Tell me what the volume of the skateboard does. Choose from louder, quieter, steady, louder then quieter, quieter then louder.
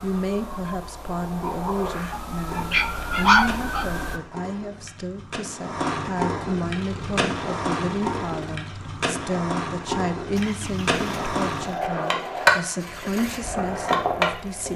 louder.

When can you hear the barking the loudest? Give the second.
3 s.